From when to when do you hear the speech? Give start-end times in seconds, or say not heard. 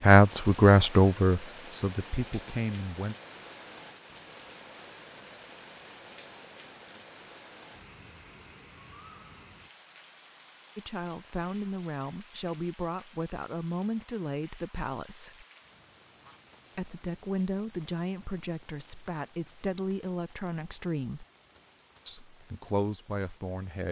0.0-3.1, 10.8-15.4, 16.8-21.2, 22.1-23.8.